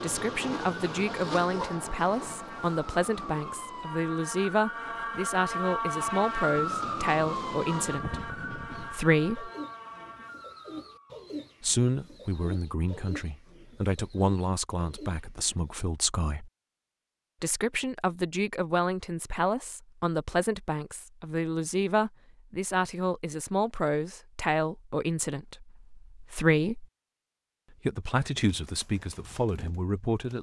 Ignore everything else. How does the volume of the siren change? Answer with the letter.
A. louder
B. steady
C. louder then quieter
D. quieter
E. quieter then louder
C.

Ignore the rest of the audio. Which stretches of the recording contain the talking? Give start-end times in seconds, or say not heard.
0.0-9.5, 11.6-16.5, 17.4-26.9, 27.9-30.3.